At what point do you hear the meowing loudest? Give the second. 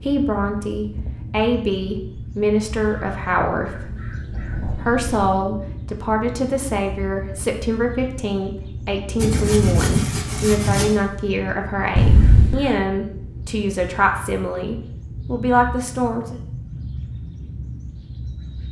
12 s.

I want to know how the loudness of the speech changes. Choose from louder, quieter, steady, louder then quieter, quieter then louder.
steady.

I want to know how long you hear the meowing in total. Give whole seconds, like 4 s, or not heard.
2 s.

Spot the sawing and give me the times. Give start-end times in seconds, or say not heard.
9.2-10.8.